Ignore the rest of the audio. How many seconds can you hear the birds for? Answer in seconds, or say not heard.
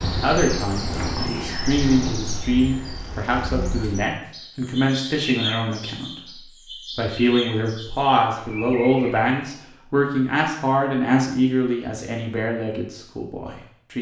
10 s.